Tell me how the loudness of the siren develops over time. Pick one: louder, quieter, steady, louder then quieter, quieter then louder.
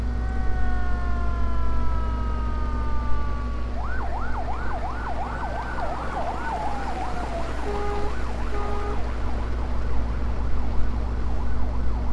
louder then quieter.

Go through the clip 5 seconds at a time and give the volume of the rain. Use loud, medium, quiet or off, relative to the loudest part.
medium, loud, medium.